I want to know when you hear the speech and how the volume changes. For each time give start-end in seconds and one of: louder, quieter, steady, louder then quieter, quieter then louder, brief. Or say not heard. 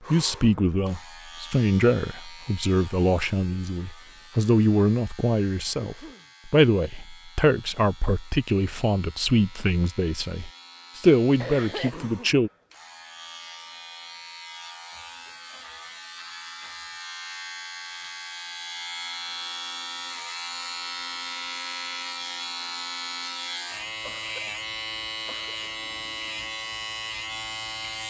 0.1-12.5 steady.